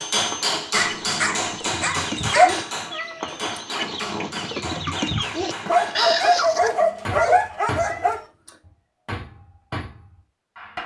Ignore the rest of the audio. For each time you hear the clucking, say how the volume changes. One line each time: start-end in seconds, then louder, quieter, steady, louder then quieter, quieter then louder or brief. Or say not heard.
0.1-6.7 louder.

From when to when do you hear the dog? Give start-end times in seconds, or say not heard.
0.7-2.5, 5.7-8.2.